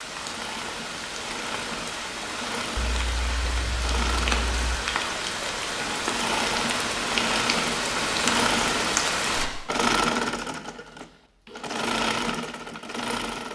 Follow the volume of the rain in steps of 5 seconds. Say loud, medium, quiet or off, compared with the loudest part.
medium, loud, off.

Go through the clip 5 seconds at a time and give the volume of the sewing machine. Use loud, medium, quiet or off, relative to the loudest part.
medium, loud, loud.